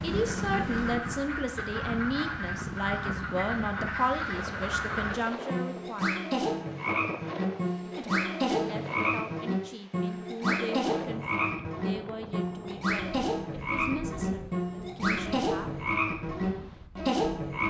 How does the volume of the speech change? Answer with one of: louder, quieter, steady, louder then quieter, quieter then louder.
quieter.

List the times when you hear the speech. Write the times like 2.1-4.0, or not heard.
0.0-6.2, 8.0-15.7.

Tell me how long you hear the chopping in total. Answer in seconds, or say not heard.
not heard.